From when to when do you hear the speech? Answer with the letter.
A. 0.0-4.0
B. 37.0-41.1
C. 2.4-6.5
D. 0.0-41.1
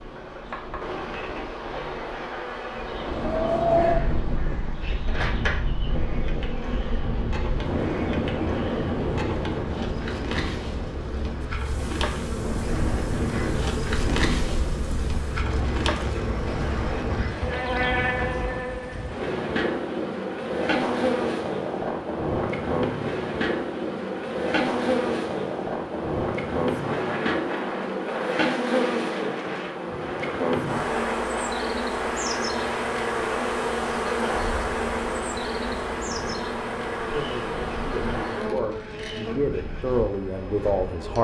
B.